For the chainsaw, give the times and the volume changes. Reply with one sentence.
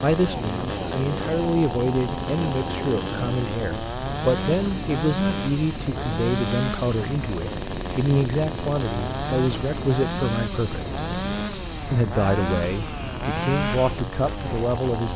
The chainsaw can be heard from 0.0 to 15.1 s, at a steady volume.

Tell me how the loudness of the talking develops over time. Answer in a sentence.
The volume of the talking stays about the same.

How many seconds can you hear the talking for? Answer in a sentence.
The talking can be heard for 14 seconds in total.